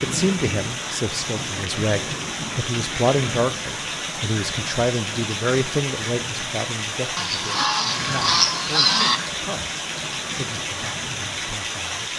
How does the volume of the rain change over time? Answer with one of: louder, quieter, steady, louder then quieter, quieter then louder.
steady.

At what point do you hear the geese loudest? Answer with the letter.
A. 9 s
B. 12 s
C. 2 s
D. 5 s
A.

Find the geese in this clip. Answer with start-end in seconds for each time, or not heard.
7.2-9.2.